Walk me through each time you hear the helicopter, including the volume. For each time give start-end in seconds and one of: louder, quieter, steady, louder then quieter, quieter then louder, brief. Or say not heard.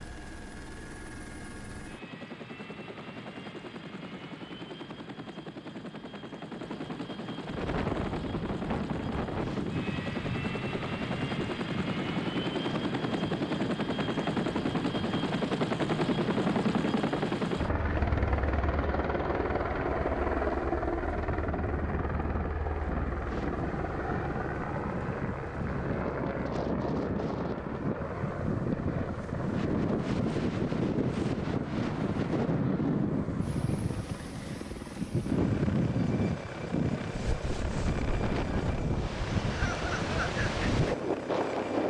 0.0-41.8 louder then quieter.